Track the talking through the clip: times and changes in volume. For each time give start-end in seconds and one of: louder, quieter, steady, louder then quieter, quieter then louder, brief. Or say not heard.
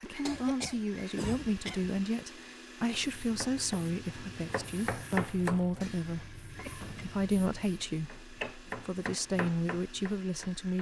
0.0-10.7 steady.